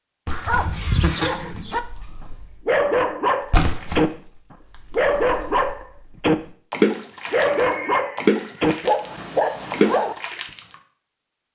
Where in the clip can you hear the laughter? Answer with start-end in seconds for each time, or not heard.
0.2-1.3, 7.2-8.7.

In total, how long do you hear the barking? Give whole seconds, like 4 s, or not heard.
10 s.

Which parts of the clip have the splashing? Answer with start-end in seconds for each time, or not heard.
0.2-0.8, 1.4-2.6, 3.5-5.8, 6.7-9.1, 9.7-10.8.